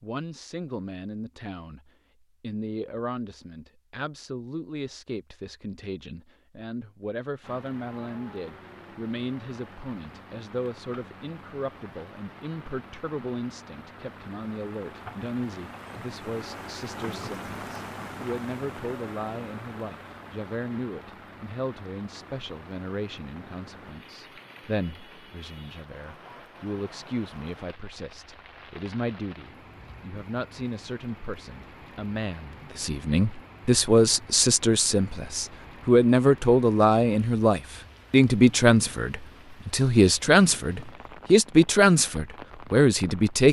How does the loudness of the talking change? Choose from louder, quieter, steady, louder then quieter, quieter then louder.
louder.